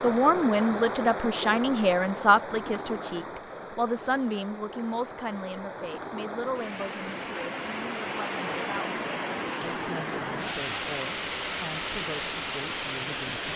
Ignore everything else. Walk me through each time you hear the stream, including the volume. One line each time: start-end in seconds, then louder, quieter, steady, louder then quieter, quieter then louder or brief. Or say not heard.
0.0-13.5 quieter then louder.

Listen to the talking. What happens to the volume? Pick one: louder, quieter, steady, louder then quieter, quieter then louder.
quieter.